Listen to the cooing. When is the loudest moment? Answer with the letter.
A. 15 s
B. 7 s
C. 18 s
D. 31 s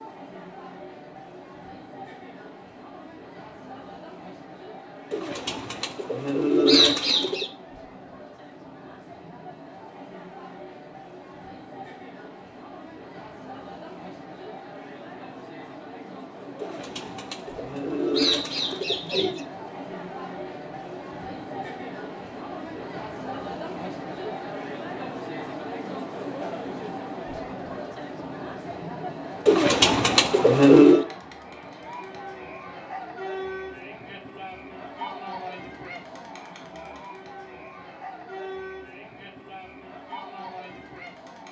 D.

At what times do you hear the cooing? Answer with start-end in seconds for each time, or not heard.
5.1-7.5, 16.6-19.4, 29.4-31.1.